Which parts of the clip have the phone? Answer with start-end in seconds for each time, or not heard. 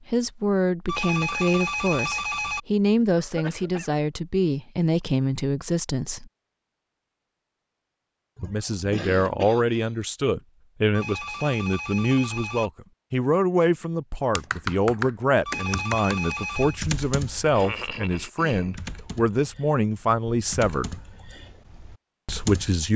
0.8-2.6, 10.9-12.7, 15.4-16.8.